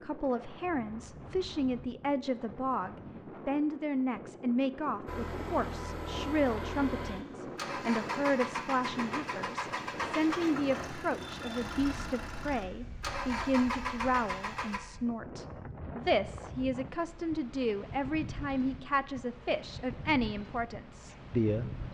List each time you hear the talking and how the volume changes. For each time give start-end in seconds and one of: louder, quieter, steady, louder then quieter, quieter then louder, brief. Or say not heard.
0.0-21.8 steady.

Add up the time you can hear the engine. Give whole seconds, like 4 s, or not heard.
10 s.